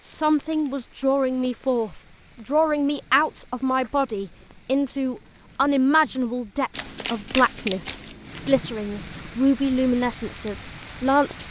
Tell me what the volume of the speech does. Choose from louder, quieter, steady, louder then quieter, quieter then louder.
steady.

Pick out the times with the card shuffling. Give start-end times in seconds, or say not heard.
6.7-8.4.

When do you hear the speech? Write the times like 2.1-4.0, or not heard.
0.0-11.4.